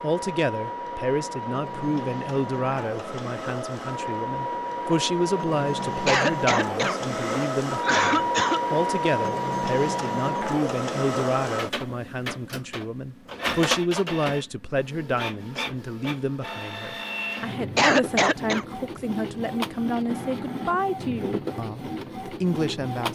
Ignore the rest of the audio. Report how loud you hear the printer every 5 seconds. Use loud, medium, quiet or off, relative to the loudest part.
medium, loud, loud, medium, medium.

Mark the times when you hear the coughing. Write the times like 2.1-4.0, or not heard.
6.0-8.6, 17.8-18.6.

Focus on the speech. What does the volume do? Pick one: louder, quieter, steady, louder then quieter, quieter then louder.
steady.